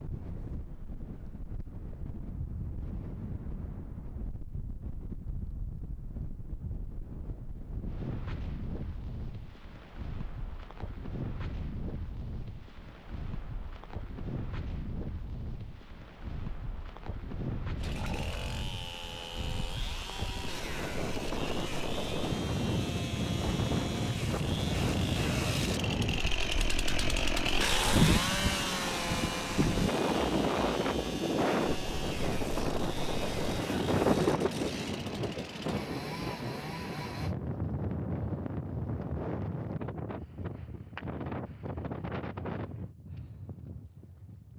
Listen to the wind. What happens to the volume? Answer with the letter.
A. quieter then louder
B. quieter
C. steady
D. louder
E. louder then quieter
E.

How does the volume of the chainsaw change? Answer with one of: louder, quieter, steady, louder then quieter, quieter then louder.
louder then quieter.